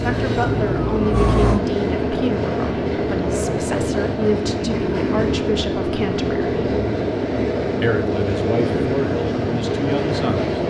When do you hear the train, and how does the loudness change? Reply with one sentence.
You can hear the train from 0.0 to 10.6 s, at a steady volume.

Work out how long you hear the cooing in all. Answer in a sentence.
You can't hear the cooing here.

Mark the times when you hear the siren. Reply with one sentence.
The siren can be heard from 0.0 to 1.6 s.